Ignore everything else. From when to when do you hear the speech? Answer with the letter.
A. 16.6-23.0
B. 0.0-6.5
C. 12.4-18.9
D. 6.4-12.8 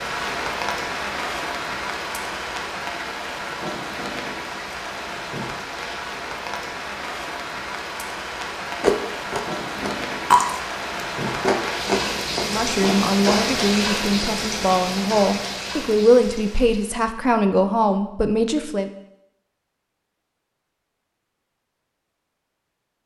C.